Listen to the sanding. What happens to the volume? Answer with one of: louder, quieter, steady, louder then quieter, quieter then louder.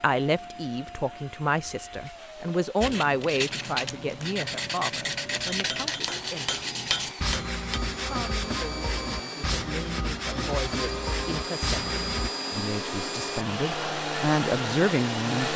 steady.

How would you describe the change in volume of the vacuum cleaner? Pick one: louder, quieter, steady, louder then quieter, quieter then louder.
louder.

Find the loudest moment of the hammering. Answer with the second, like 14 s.
7 s.